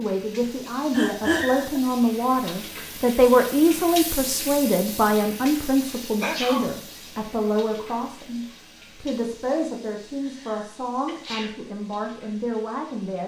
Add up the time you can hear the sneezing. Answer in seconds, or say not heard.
3 s.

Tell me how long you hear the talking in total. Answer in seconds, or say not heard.
13 s.